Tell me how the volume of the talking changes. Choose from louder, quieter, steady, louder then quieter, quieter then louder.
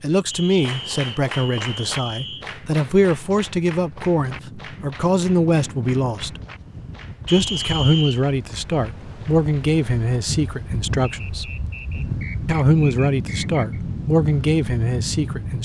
steady.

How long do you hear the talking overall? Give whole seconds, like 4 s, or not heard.
14 s.